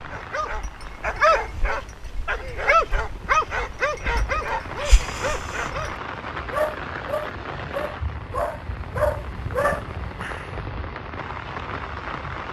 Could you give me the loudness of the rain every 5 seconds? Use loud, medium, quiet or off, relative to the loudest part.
medium, loud, loud.